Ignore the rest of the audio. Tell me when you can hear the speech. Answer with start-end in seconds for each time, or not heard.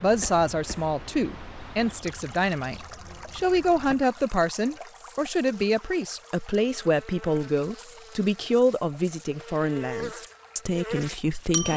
0.0-11.7.